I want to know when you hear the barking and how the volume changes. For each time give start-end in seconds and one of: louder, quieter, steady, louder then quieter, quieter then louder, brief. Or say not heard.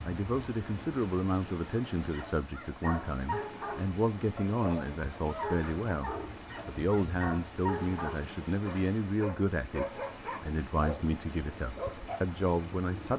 2.0-12.2 steady.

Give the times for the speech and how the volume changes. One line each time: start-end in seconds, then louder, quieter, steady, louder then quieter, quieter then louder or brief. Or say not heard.
0.0-13.1 steady.